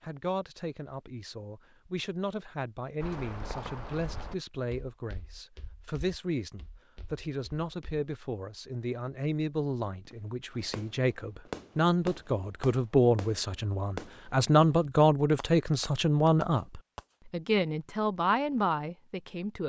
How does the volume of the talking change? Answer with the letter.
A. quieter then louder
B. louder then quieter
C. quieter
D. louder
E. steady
D.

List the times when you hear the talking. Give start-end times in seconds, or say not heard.
0.0-19.6.